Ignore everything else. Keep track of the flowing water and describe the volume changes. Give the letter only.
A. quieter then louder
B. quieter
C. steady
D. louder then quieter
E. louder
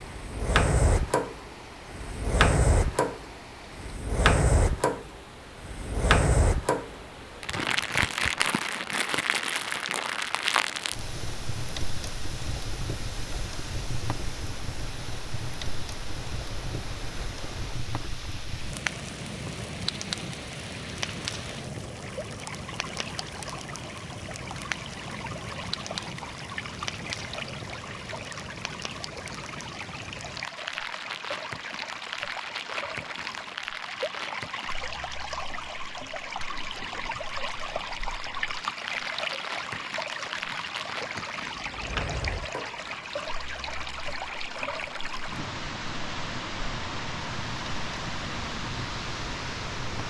E.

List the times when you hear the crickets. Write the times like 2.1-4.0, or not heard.
not heard.